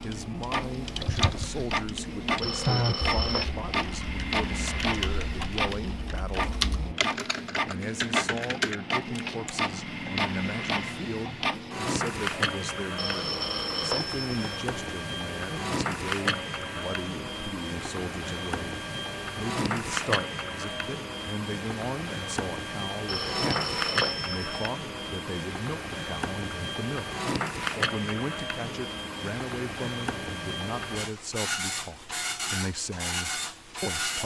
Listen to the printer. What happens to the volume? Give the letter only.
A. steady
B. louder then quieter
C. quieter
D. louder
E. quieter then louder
A.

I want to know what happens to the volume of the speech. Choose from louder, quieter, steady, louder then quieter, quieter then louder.
steady.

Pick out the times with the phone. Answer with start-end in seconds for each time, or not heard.
2.4-3.5, 12.9-14.6, 23.1-24.7.